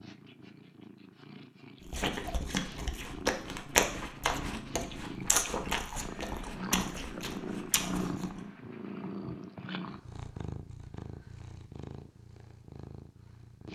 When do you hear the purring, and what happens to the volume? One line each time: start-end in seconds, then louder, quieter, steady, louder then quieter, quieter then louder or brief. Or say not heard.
0.0-13.7 louder then quieter.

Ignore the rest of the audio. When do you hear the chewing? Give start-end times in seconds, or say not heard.
1.8-8.4.